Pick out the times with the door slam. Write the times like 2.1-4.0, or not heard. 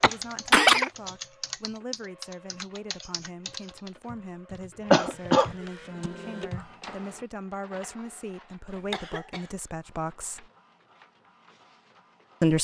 not heard.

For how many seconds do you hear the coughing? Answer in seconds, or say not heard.
2 s.